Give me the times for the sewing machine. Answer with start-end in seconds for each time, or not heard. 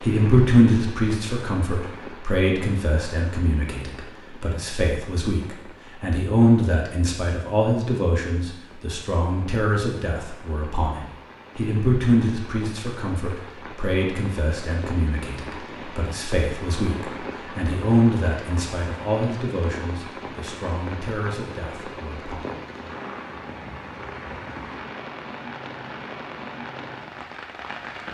not heard.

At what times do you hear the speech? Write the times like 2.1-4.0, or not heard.
0.0-22.4.